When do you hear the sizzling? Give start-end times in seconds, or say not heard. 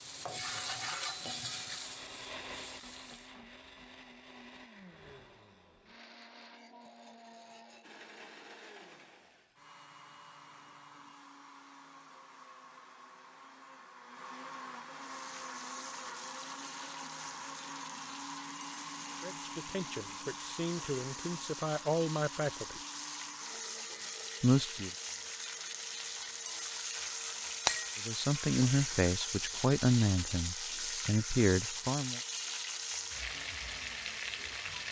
0.0-3.4, 14.9-34.8.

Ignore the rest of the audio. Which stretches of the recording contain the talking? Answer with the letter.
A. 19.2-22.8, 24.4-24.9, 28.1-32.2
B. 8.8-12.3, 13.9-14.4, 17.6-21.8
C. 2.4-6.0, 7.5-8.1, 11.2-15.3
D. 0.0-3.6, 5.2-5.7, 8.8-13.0
A.